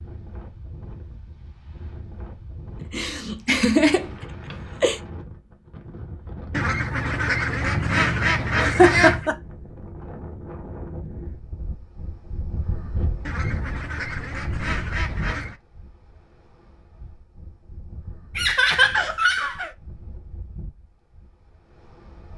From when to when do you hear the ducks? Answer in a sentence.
The ducks can be heard from 6.5 to 9.3 s and from 13.2 to 15.6 s.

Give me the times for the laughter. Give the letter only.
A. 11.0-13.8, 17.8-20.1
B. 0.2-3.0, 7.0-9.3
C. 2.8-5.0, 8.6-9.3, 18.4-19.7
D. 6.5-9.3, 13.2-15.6
C.